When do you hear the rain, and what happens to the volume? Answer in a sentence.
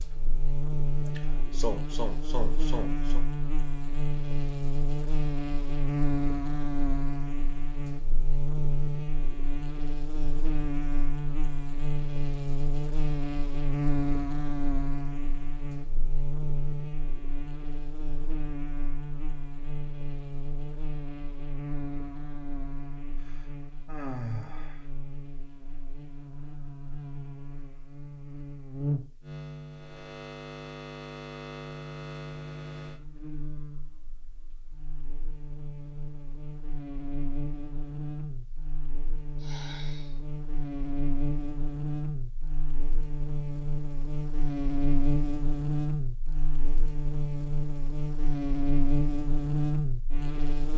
The rain can't be heard in this clip.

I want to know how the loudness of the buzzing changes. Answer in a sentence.
The loudness of the buzzing goes down, then up.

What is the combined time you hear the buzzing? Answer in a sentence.
The buzzing can be heard for 51 seconds in total.